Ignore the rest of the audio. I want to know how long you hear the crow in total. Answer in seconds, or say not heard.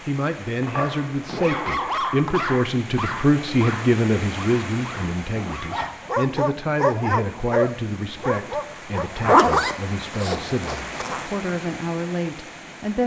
not heard.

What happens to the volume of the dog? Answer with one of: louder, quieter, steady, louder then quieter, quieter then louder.
quieter then louder.